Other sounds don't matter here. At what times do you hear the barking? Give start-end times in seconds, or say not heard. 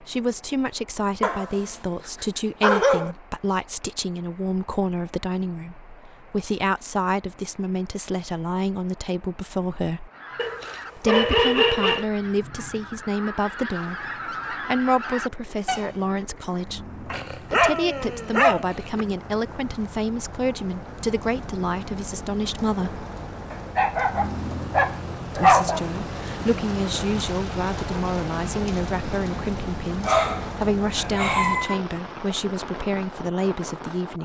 1.2-3.1, 10.3-12.1, 17.1-19.1, 23.5-25.8, 29.5-31.8.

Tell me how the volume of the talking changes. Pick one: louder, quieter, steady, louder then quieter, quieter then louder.
steady.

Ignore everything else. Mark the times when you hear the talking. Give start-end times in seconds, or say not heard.
0.0-10.1, 10.9-23.1, 25.4-34.1.